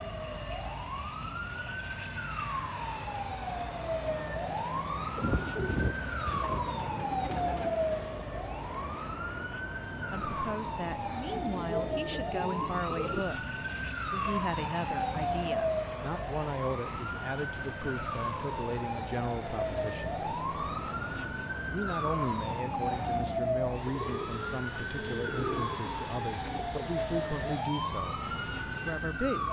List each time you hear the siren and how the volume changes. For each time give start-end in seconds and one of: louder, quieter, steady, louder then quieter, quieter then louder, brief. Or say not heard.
0.0-29.4 steady.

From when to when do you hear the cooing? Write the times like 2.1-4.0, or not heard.
5.2-7.7, 11.2-13.2, 23.9-26.7.